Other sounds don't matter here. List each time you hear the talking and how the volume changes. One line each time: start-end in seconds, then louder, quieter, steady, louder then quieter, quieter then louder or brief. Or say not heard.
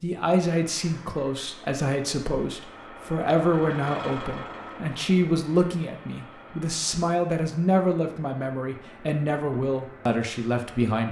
0.0-11.0 steady.